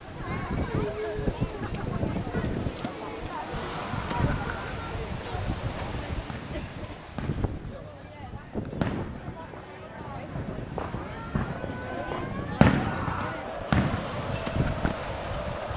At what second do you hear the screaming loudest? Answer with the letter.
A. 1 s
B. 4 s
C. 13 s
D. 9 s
C.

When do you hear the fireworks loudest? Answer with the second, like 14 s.
13 s.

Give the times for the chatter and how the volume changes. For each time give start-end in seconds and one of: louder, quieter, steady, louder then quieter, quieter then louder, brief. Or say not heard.
0.0-15.7 quieter then louder.